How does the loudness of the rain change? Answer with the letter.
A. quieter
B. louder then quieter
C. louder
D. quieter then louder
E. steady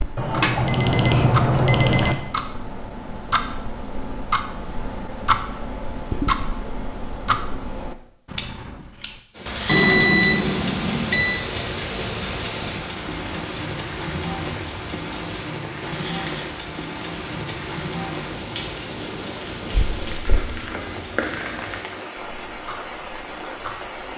E.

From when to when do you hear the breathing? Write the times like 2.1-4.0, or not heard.
not heard.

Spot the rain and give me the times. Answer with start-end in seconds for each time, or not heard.
9.3-24.1.